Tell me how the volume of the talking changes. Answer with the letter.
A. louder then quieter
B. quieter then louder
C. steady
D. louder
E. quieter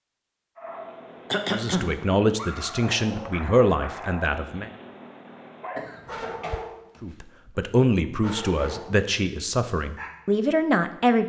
C.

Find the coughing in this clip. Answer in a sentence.
You can hear the coughing from 1.3 to 1.9 s and from 5.8 to 6.5 s.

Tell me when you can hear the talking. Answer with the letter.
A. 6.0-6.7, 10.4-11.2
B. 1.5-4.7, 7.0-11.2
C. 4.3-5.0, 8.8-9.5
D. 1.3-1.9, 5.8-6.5
B.